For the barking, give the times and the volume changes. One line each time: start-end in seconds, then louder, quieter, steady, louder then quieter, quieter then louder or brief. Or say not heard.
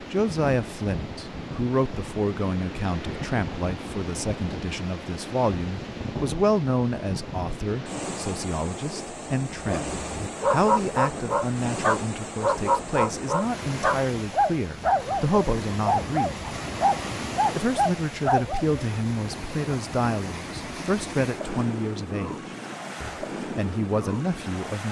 9.6-18.9 steady.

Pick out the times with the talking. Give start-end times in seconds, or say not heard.
0.0-16.4, 17.6-22.4, 23.0-24.8.